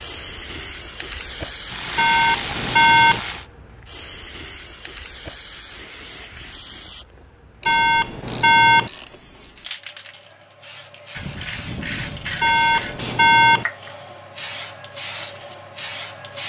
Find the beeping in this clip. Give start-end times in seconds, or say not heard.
1.9-3.2, 7.7-8.9, 12.4-13.7.